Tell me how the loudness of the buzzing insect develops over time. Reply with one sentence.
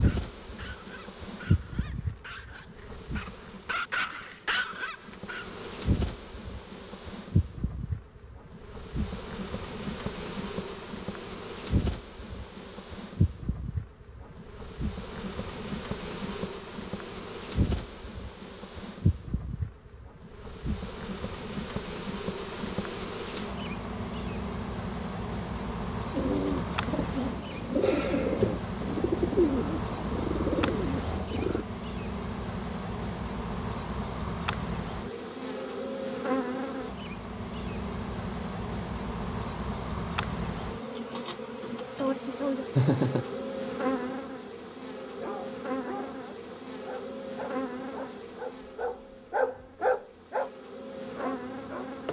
The loudness of the buzzing insect stays about the same.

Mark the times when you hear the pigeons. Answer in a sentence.
You can hear the pigeons from 26.1 to 31.6 s.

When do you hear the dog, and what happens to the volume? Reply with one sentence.
You can hear the dog from 0.0 to 5.7 s, getting louder; and from 45.1 to 52.0 s, getting louder then quieter.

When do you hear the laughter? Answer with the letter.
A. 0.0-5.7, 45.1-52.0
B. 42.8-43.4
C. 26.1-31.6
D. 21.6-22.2
B.